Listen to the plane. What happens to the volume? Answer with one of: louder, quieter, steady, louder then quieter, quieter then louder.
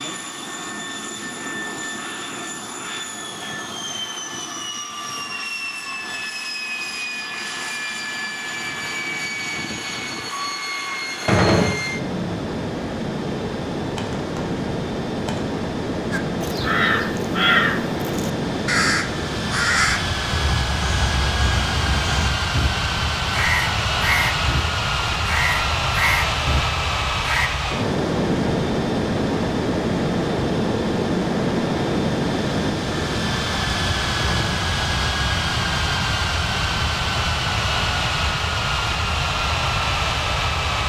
louder.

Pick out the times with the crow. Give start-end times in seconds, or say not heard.
16.1-27.5.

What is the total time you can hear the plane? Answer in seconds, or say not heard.
41 s.